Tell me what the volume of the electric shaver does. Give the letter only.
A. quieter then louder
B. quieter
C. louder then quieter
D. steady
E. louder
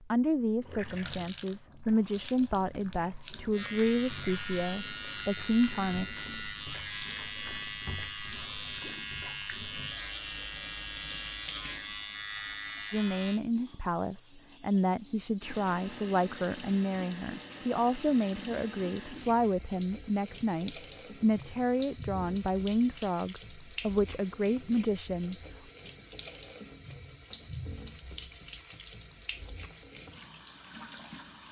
D.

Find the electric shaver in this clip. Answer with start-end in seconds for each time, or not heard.
3.5-13.4.